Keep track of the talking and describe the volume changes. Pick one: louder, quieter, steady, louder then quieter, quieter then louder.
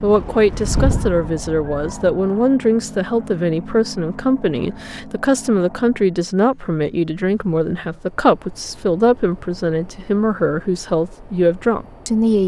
steady.